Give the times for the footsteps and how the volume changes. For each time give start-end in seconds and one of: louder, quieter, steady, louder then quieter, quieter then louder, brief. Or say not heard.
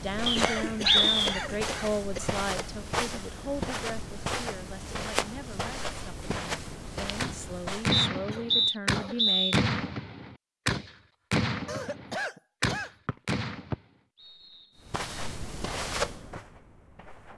0.0-8.0 steady
14.8-17.3 brief.